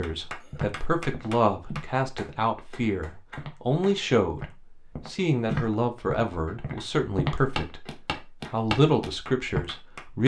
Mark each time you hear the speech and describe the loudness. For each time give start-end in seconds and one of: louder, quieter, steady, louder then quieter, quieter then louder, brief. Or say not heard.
0.0-10.2 steady.